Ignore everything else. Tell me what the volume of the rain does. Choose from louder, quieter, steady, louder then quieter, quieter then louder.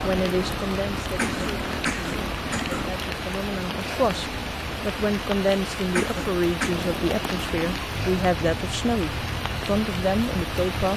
steady.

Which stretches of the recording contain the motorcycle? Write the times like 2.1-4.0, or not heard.
0.0-3.0, 6.7-10.9.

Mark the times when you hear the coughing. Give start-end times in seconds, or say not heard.
1.1-2.9, 6.0-6.8.